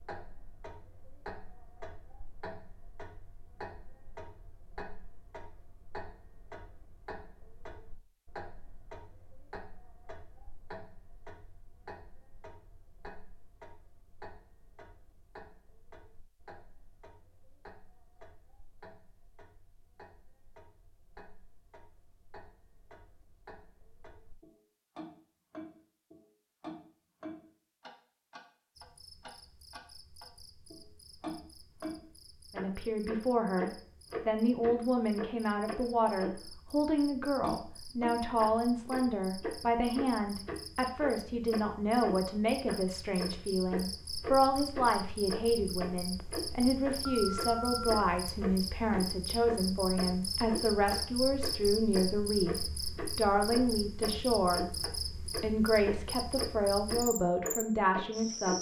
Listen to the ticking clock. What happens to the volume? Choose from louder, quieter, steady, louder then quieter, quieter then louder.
quieter then louder.